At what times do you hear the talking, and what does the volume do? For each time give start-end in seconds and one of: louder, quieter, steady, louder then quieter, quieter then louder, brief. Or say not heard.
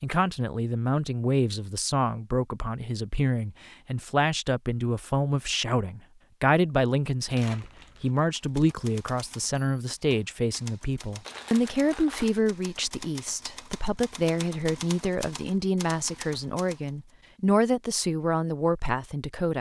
0.0-19.5 steady.